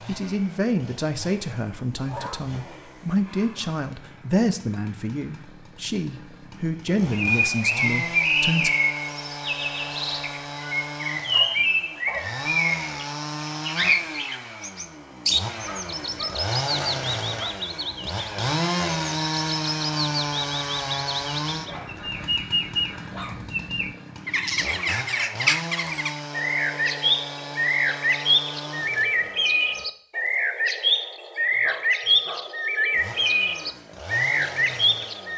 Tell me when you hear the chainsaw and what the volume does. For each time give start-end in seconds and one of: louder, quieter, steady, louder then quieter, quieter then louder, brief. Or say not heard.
0.0-29.9 louder then quieter
32.9-35.3 brief.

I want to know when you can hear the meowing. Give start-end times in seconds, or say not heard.
not heard.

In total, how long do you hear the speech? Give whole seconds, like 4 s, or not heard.
9 s.